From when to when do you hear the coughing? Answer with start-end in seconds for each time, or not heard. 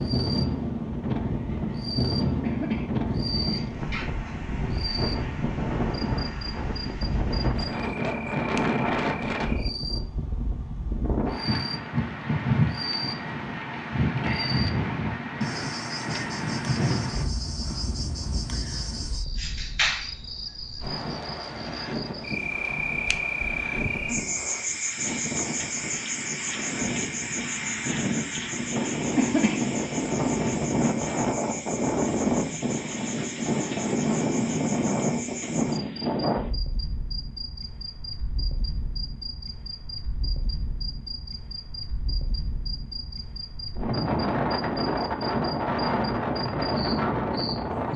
2.4-4.4, 29.1-29.8.